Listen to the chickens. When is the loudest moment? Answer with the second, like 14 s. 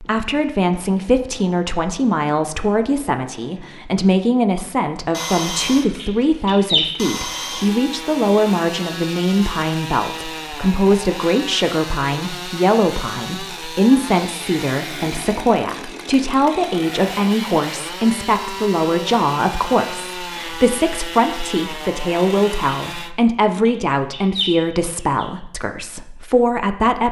7 s.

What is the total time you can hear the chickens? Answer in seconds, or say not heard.
3 s.